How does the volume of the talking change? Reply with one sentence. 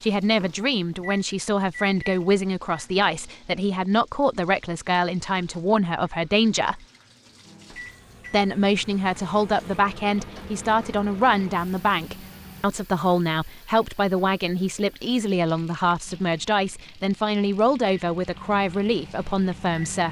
The volume of the talking stays about the same.